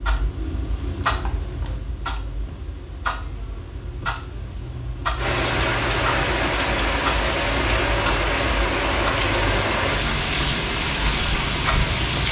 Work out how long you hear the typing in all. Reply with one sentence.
The typing can't be heard in this clip.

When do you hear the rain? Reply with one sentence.
The rain can be heard from 5.2 to 12.2 s.